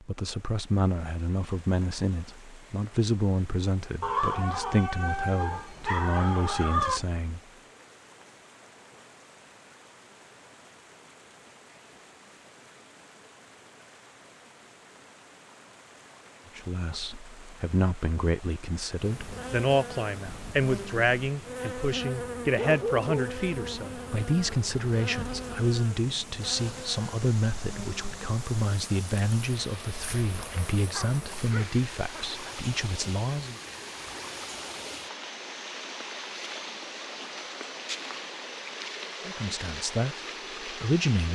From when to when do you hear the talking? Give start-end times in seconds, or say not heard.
0.0-7.4, 16.6-33.5, 39.2-41.3.